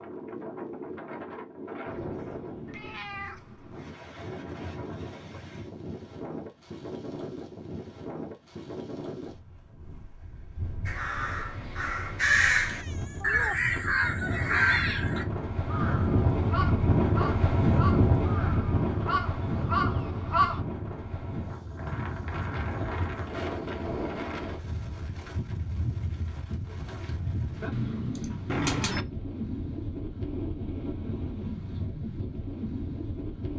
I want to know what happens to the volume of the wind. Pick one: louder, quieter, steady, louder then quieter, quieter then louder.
louder then quieter.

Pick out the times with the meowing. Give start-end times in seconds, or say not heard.
2.6-3.9, 12.6-13.6, 27.7-29.1.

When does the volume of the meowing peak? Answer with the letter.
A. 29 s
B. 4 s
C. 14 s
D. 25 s
A.